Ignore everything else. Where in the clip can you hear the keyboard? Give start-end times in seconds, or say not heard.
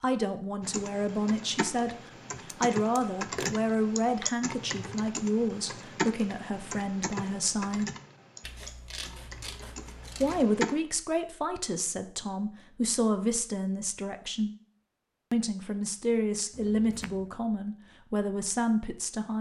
0.6-10.8.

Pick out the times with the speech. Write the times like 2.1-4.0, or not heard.
0.0-7.9, 10.2-14.5, 15.3-19.3.